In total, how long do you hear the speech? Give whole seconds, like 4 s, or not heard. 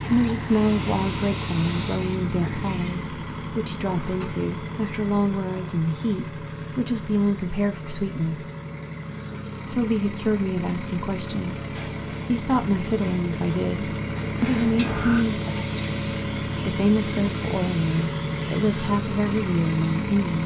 18 s.